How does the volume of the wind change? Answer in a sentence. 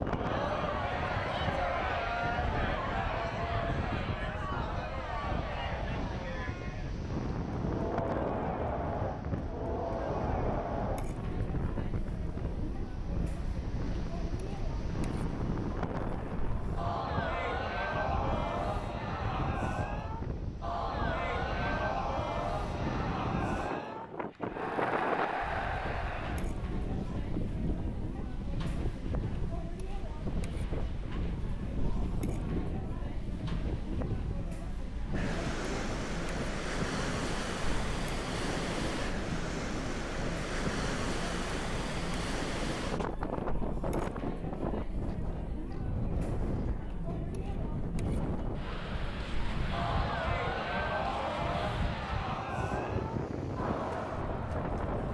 The loudness of the wind stays about the same.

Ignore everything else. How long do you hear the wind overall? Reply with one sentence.
You can hear the wind for 55 seconds altogether.